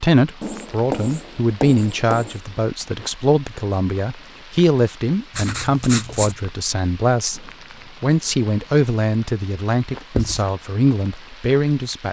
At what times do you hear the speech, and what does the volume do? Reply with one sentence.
The speech can be heard from 0.0 to 12.0 s, at a steady volume.